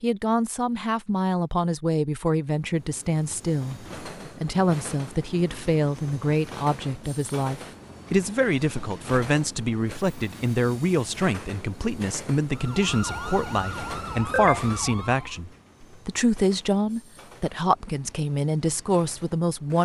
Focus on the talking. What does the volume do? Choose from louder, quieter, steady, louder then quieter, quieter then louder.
steady.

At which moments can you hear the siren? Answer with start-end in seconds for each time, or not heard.
12.5-15.3.